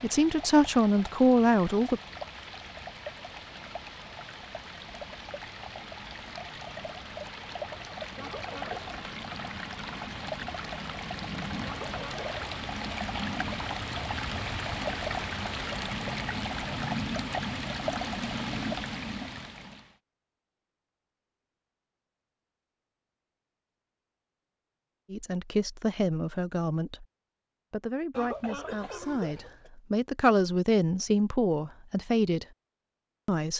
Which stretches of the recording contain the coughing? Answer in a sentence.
You can hear the coughing from 8.2 to 8.9 s, from 11.7 to 12.4 s and from 28.1 to 29.7 s.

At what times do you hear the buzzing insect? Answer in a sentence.
The buzzing insect can't be heard in this clip.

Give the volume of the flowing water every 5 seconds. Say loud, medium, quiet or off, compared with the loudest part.
medium, medium, loud, loud, off, off, off.